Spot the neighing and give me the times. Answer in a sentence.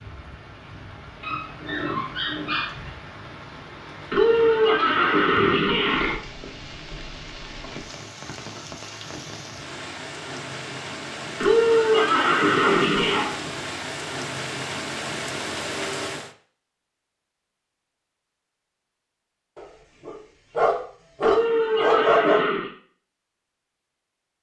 The neighing can be heard from 4.1 to 6.2 s, from 11.4 to 13.3 s and from 21.2 to 22.7 s.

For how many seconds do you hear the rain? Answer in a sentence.
You can hear the rain for 16 seconds altogether.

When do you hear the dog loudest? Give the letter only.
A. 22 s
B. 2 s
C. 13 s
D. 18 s
A.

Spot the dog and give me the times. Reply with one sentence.
The dog can be heard from 1.2 to 2.7 s, from 12.1 to 13.5 s and from 19.6 to 22.4 s.